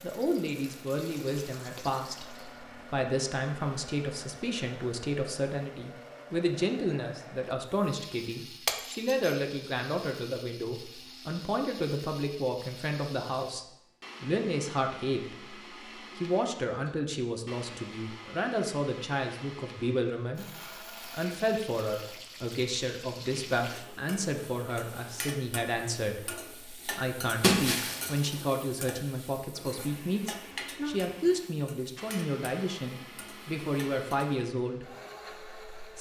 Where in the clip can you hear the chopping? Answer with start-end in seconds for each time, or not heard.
not heard.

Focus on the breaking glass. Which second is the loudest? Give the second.
28 s.